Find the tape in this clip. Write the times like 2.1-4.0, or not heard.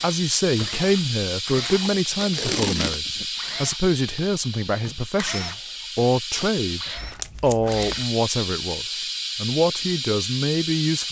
1.6-3.2, 7.0-8.1.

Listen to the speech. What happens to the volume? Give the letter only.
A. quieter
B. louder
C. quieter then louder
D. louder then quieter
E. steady
E.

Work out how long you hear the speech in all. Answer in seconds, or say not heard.
11 s.